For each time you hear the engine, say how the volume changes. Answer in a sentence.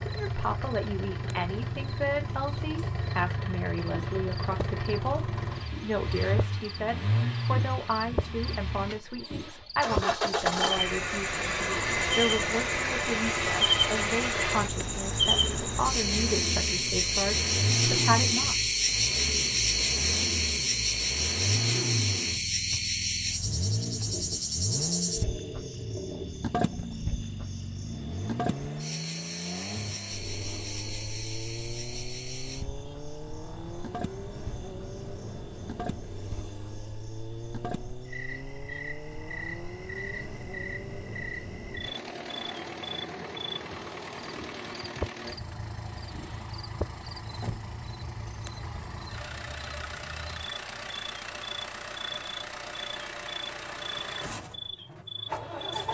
You can hear the engine from 0.0 to 55.8 s, getting quieter.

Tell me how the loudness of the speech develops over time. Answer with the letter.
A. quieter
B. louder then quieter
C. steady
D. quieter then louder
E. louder
C.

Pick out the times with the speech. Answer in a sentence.
The speech can be heard from 0.0 to 18.6 s.